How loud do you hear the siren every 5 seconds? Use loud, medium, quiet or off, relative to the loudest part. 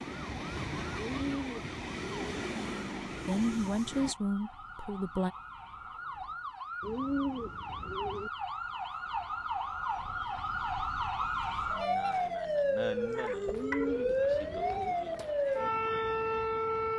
quiet, medium, loud, loud.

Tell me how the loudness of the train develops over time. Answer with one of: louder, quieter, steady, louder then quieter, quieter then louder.
steady.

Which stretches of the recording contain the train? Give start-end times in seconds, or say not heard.
0.0-4.2.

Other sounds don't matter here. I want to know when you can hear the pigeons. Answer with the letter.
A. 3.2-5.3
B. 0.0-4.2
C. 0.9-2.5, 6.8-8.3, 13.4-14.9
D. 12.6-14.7
C.